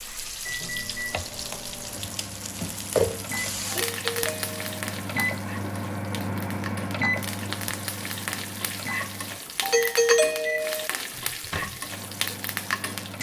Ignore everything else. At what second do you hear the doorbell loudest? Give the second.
10 s.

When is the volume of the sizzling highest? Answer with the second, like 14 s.
3 s.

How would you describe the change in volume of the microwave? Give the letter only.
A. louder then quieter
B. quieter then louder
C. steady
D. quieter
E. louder
A.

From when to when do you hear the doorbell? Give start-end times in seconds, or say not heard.
3.8-4.8, 9.6-10.9.